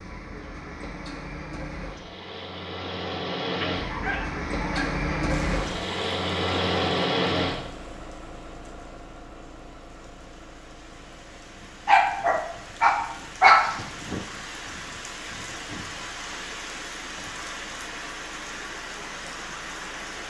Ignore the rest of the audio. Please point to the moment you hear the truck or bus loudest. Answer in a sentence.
The volume of the truck or bus peaks at 7 seconds.